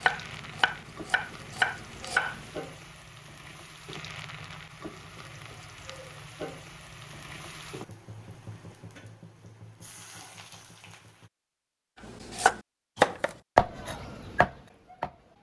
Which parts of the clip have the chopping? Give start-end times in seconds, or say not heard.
0.0-2.5, 12.1-15.3.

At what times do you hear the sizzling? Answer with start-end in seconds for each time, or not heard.
0.0-11.3.